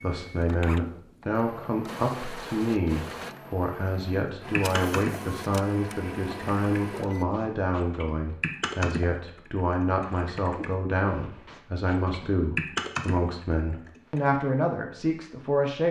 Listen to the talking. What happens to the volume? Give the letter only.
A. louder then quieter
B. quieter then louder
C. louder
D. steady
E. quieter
D.